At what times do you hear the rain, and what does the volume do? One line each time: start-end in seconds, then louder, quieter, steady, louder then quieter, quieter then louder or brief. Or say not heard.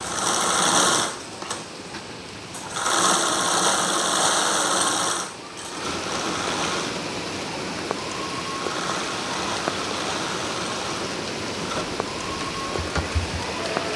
0.0-13.9 louder.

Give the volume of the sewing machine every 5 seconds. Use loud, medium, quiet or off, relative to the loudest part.
loud, medium, medium.